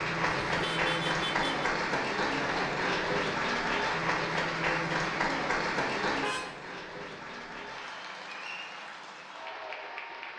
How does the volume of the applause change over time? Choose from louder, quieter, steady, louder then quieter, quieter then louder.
quieter.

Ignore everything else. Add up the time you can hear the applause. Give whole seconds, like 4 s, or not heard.
10 s.